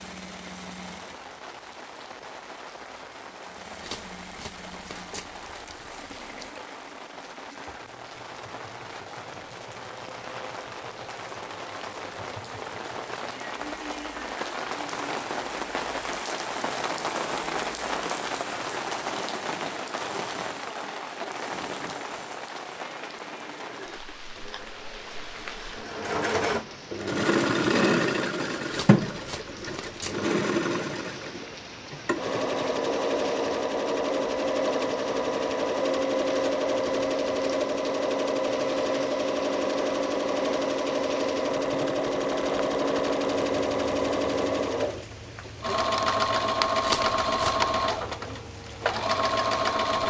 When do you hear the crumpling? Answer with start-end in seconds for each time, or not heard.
3.8-6.5, 28.7-30.1, 46.8-47.7.